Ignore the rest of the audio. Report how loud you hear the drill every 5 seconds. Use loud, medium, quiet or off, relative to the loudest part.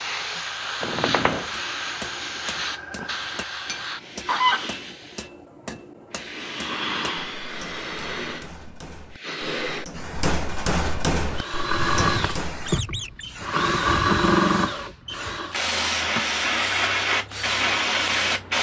off, off, loud, medium.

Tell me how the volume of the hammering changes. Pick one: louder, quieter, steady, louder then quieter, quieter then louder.
louder.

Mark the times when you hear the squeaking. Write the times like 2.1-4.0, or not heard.
0.8-1.5, 12.7-13.3.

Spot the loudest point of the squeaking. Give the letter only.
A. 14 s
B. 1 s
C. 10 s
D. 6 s
B.